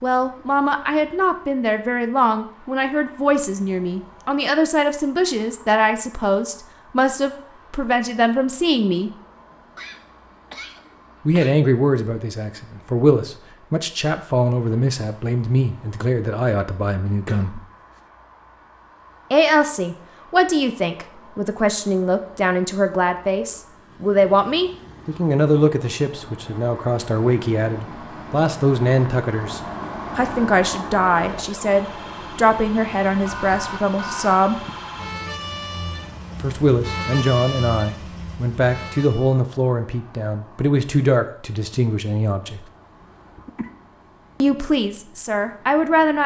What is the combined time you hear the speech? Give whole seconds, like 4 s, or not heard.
39 s.